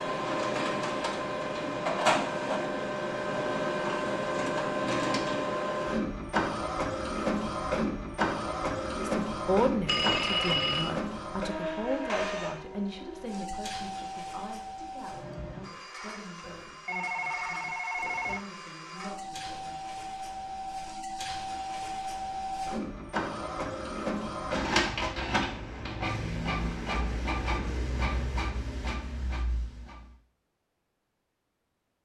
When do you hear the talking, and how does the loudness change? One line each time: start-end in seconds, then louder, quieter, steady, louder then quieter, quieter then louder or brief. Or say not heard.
8.9-19.9 quieter.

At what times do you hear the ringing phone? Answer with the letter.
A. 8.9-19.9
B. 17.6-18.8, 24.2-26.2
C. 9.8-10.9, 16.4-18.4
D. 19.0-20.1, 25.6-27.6
C.